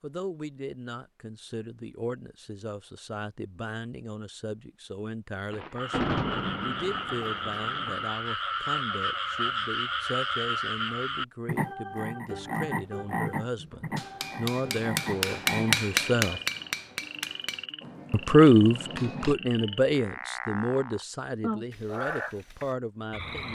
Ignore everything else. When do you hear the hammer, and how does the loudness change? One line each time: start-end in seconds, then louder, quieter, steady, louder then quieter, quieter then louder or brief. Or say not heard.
13.6-19.4 louder then quieter.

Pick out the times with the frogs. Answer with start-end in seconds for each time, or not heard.
5.8-23.5.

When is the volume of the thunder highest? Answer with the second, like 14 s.
6 s.